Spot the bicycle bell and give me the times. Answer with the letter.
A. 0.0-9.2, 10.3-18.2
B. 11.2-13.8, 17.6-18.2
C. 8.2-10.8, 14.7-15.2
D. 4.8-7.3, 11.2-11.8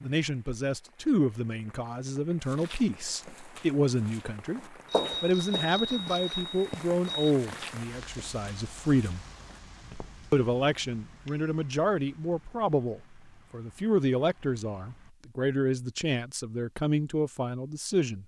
D.